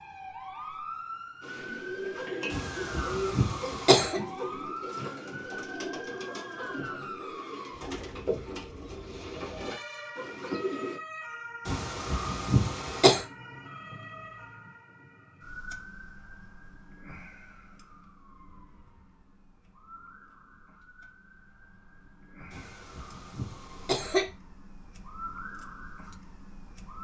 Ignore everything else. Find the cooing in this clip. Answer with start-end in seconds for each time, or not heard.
1.4-11.0.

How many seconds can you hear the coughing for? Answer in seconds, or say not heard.
5 s.